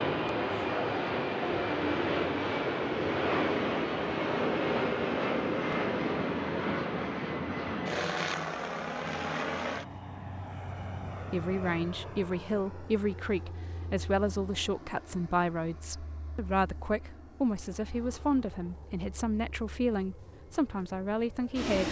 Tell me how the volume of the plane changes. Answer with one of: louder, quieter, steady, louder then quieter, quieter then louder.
quieter.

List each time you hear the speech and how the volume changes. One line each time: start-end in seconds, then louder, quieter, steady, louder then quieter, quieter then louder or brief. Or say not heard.
11.3-21.8 steady.